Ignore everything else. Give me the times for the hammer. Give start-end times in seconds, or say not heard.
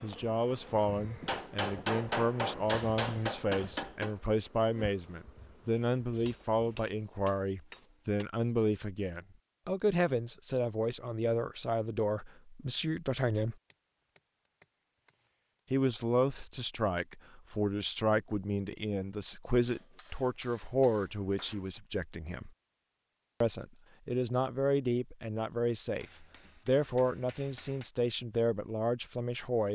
1.2-4.2, 6.2-8.2, 13.7-15.2, 19.6-21.6, 26.0-27.9.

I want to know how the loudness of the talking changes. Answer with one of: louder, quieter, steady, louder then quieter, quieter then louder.
steady.